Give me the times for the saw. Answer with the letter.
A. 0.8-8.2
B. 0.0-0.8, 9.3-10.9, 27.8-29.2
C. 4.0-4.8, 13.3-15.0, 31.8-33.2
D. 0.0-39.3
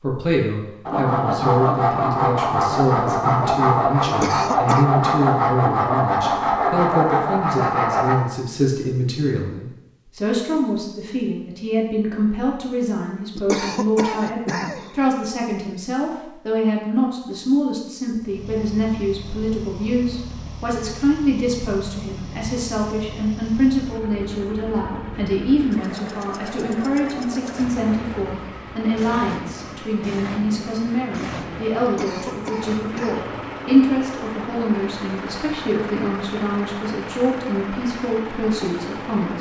A.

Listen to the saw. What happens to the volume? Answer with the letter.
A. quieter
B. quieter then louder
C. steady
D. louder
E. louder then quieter
C.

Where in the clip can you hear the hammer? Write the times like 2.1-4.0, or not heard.
not heard.